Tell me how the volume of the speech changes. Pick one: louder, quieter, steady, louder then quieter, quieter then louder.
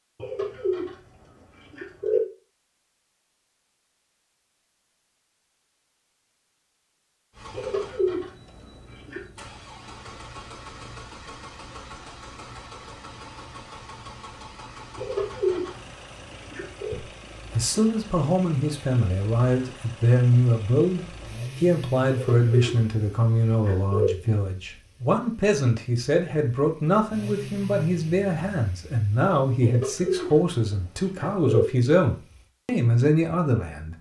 steady.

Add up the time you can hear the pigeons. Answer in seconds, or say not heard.
10 s.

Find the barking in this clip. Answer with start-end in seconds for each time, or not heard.
not heard.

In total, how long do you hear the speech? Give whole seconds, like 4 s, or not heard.
17 s.